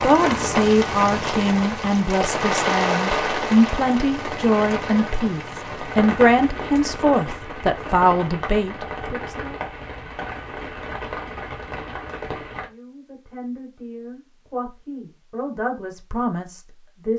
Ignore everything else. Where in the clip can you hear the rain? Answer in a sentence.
The rain can be heard from 0.0 to 12.7 s.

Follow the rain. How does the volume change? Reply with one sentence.
The loudness of the rain goes down.